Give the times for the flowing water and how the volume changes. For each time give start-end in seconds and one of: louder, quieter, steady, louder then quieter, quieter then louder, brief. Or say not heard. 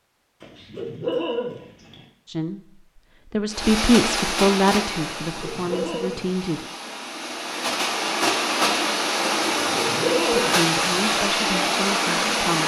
3.5-12.6 quieter then louder.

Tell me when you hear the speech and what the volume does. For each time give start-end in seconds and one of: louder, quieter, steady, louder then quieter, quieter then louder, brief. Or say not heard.
2.2-6.7 louder then quieter
10.4-12.6 brief.